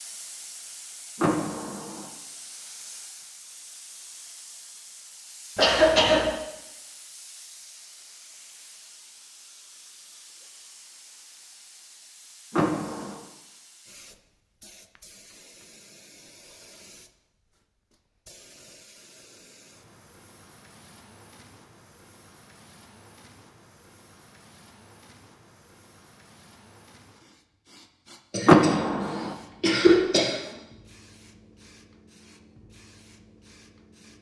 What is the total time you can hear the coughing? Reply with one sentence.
You can hear the coughing for 2 seconds altogether.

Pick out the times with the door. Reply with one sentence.
You can hear the door from 1.1 to 2.0 s, from 12.5 to 13.2 s and from 28.4 to 29.4 s.